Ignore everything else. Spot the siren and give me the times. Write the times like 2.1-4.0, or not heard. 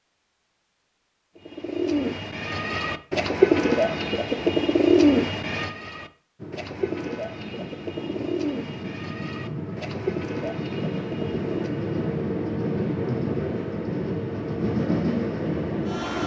not heard.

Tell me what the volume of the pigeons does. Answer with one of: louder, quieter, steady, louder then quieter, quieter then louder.
quieter.